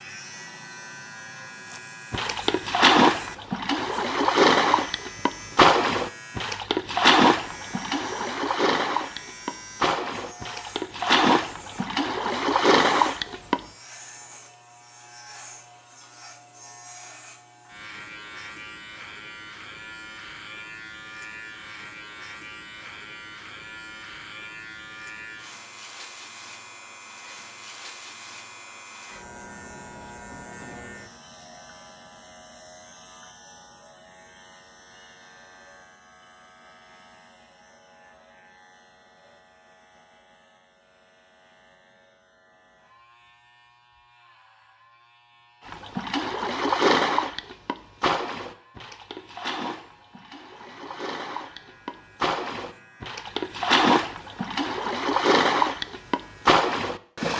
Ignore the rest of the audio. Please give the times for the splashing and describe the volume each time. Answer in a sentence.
You can hear the splashing from 1.6 to 13.6 s, getting quieter then louder; and from 45.6 to 57.3 s, getting quieter then louder.